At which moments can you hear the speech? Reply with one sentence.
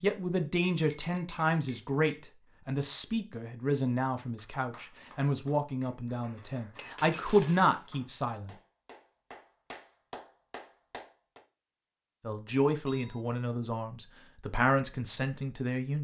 You can hear the speech from 0.0 to 8.5 s and from 12.2 to 15.9 s.